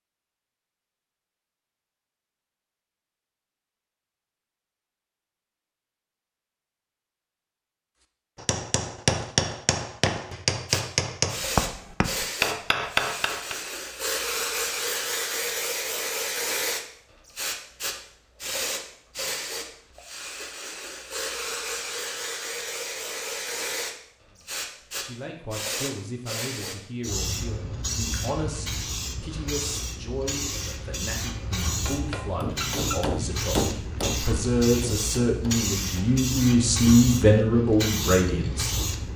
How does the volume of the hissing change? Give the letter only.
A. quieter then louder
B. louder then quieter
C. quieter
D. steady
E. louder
D.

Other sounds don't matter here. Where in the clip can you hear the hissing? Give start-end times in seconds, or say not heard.
10.7-39.1.